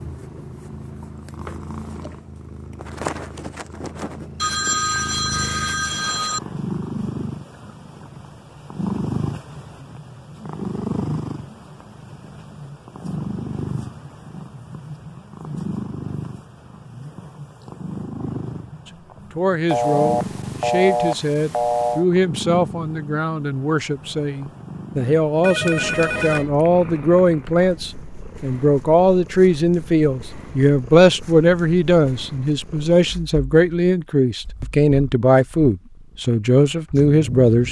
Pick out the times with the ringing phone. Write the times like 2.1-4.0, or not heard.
4.4-6.4, 19.6-22.1, 25.4-26.5.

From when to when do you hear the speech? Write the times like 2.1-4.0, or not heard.
18.9-37.6.